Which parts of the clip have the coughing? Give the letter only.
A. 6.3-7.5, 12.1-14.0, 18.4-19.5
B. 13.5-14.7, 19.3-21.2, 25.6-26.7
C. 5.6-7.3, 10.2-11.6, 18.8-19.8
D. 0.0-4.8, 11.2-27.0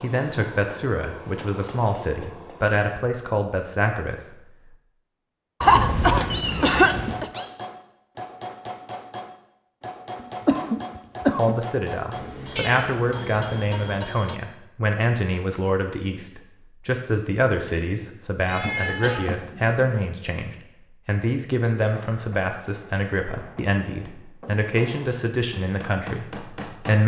C.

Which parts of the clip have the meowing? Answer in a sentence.
You can hear the meowing from 6.3 to 7.5 s, from 12.1 to 14.0 s and from 18.4 to 19.5 s.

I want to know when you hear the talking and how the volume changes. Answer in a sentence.
You can hear the talking from 0.0 to 4.8 s, at a steady volume; and from 11.2 to 27.0 s, at a steady volume.